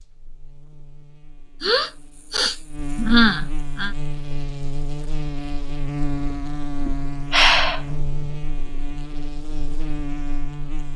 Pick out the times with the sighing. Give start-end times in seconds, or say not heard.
1.6-4.0, 6.8-8.1.